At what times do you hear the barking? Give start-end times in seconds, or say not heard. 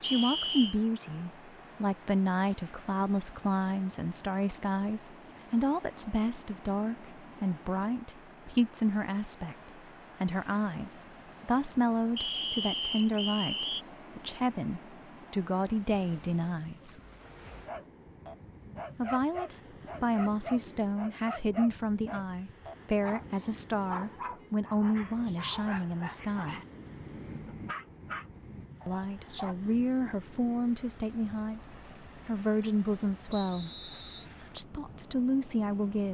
17.6-29.6.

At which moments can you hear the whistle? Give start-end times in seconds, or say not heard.
0.0-0.8, 12.2-13.8, 33.2-34.3.